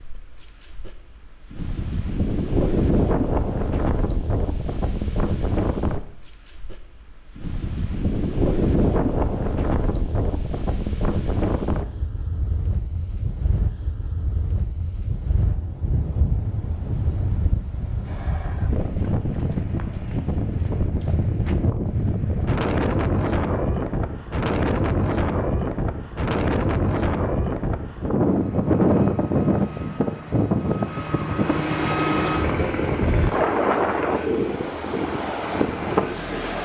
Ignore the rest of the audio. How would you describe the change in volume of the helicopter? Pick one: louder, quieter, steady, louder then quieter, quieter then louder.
louder then quieter.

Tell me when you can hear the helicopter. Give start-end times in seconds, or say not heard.
28.2-36.6.